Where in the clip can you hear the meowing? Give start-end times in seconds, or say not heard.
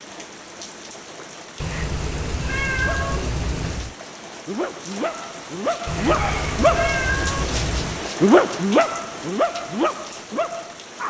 1.6-4.0, 5.8-8.1.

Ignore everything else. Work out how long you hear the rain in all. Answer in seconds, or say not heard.
11 s.